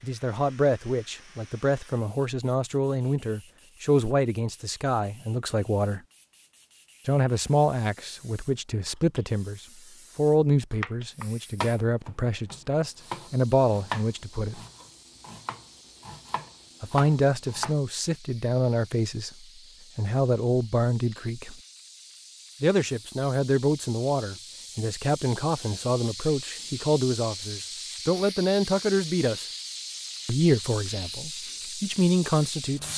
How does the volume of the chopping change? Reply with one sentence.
The volume of the chopping goes down, then up.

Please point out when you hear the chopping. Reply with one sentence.
The chopping can be heard from 10.8 to 17.8 s.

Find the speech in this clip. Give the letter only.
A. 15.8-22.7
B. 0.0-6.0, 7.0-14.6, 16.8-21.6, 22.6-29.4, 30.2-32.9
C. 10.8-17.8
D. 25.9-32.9
B.